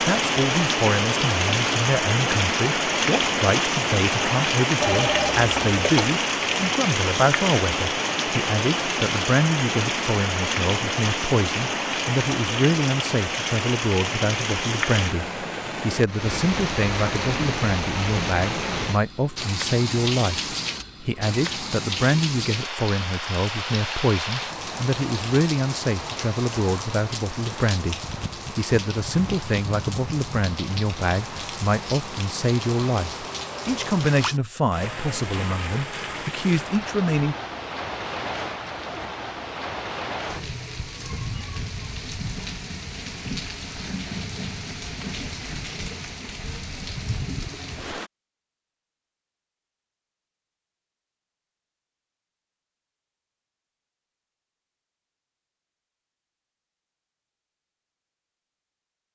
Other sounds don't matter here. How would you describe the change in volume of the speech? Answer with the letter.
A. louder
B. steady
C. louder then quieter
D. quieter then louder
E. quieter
B.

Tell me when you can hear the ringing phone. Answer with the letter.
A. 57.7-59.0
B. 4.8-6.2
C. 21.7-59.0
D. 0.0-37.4
B.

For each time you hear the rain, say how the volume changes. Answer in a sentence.
You can hear the rain from 0.0 to 48.1 s, getting quieter.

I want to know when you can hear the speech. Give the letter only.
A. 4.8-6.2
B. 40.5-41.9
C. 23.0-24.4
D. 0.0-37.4
D.